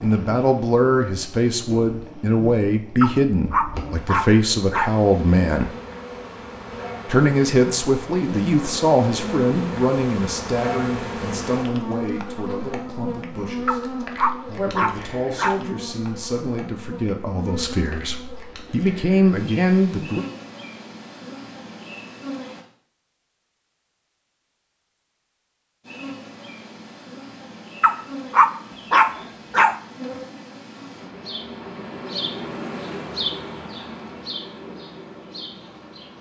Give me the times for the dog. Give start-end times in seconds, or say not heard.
3.0-5.0, 13.7-15.6, 27.8-29.8.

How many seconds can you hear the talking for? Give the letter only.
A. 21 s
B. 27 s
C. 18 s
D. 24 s
C.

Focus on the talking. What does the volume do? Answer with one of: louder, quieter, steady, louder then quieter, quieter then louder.
quieter then louder.